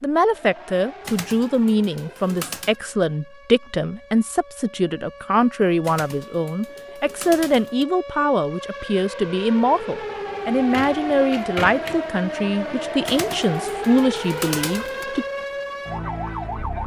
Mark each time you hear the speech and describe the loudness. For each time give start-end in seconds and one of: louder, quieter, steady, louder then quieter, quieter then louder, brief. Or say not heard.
0.0-15.2 steady.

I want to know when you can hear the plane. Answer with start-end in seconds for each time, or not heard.
not heard.